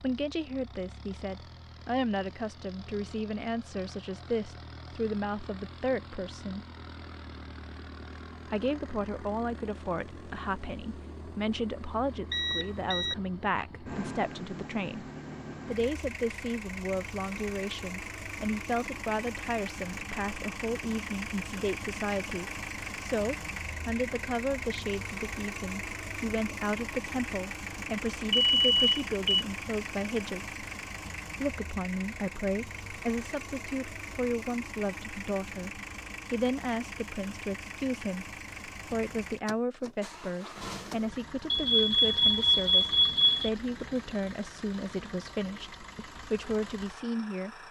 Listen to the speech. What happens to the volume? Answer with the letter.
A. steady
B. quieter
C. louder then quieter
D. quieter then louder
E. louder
A.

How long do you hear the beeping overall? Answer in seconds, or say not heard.
4 s.